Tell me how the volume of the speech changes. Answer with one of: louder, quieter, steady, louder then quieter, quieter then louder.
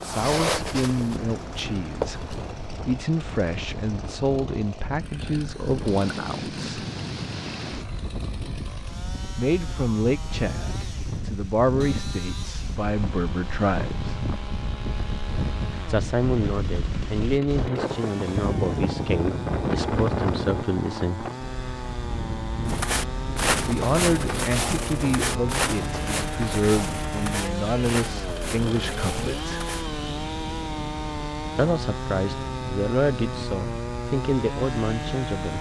steady.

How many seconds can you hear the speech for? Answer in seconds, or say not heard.
27 s.